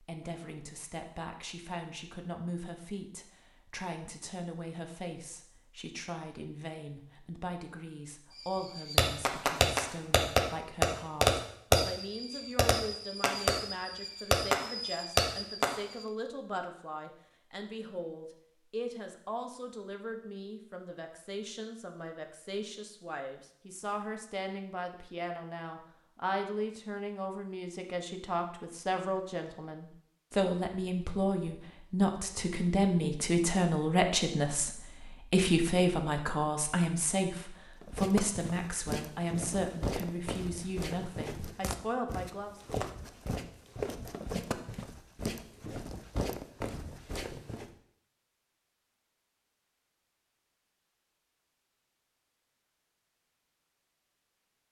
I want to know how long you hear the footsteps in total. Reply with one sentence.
The footsteps can be heard for 10 seconds in total.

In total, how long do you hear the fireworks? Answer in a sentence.
The fireworks can be heard for 8 seconds in total.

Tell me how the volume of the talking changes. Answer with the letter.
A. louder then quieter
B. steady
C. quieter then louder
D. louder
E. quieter
D.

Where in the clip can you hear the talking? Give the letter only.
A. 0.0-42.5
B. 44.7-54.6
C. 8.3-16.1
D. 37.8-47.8
A.